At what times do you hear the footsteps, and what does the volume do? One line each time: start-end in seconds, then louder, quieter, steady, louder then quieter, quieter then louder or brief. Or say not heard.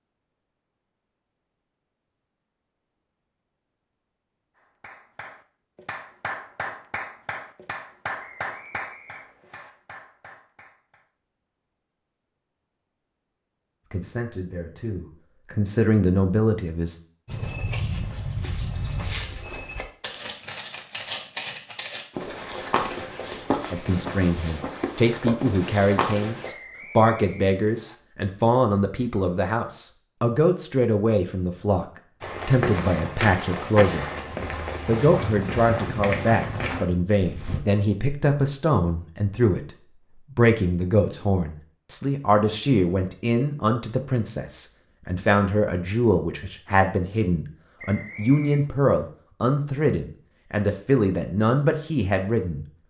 17.2-26.5 steady
32.2-37.6 steady.